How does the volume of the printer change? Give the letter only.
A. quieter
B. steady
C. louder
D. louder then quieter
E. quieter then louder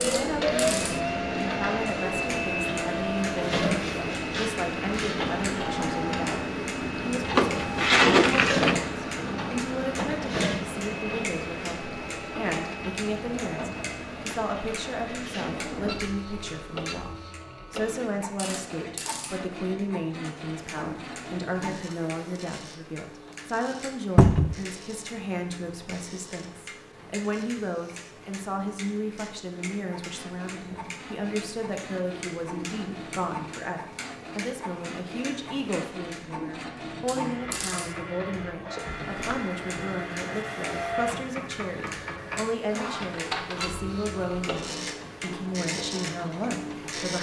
E.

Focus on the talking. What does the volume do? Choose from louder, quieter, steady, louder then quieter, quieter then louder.
steady.